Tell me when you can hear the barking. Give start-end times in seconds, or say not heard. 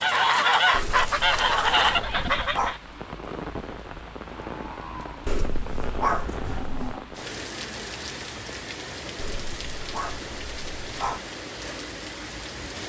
0.7-2.8, 5.2-7.0, 9.2-11.2.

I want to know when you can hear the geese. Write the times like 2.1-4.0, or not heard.
0.0-2.8.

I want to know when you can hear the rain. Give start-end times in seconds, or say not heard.
0.0-12.8.